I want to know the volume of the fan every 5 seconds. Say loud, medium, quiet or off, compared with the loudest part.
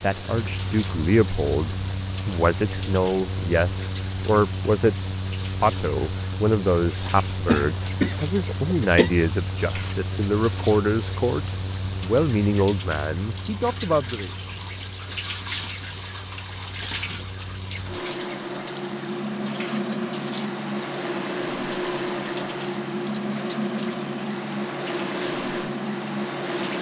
medium, medium, medium, medium, loud, loud.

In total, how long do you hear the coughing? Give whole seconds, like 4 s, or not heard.
2 s.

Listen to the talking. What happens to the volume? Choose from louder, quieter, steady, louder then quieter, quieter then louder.
steady.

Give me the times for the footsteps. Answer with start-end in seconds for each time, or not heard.
not heard.